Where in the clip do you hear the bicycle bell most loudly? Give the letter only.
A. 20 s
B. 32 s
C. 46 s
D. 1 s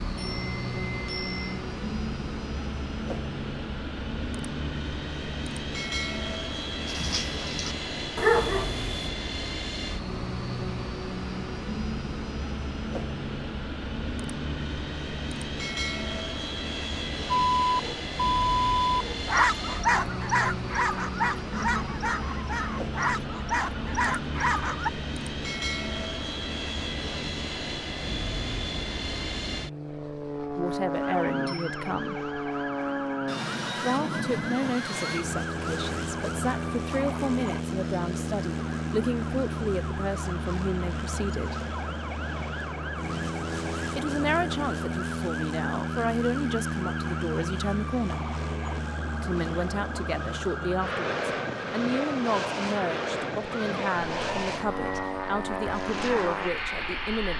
D.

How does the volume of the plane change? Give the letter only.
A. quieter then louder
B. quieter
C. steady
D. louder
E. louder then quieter
C.